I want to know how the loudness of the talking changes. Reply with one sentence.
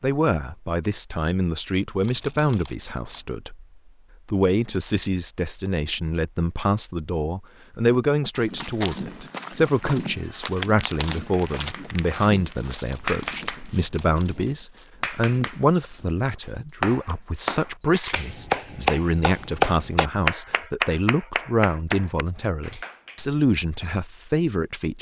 The loudness of the talking stays about the same.